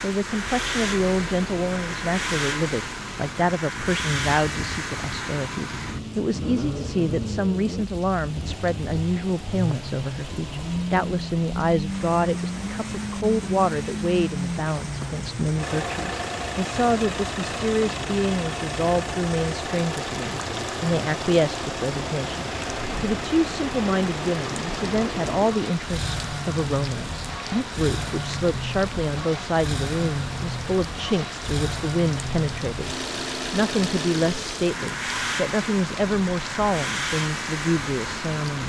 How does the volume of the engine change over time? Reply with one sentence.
The volume of the engine stays about the same.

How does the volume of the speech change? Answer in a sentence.
The volume of the speech stays about the same.